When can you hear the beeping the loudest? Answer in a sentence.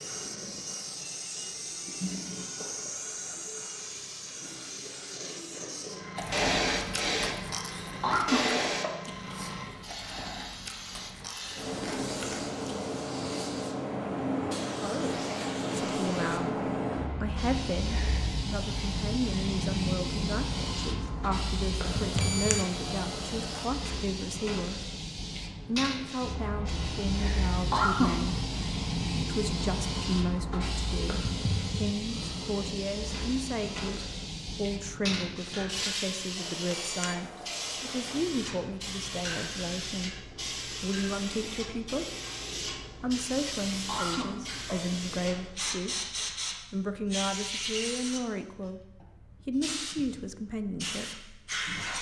The loudest moment of the beeping is at 22 seconds.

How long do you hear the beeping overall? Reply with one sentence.
You can hear the beeping for 4 seconds altogether.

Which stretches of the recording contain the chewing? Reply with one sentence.
The chewing can be heard from 6.2 to 12.8 s.